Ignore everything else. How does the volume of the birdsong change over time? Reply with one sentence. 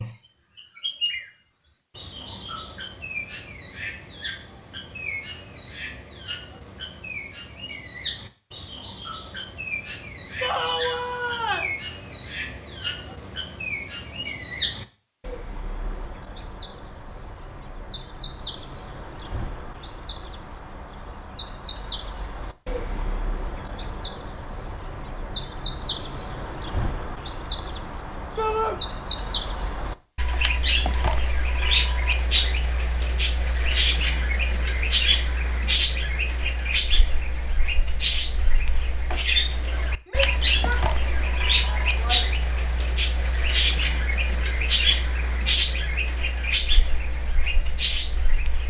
The loudness of the birdsong goes up.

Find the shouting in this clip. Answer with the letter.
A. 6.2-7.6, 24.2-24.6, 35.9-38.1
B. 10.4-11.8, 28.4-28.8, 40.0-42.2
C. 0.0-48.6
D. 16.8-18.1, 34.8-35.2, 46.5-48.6
B.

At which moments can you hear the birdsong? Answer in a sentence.
The birdsong can be heard from 0.0 to 48.6 s.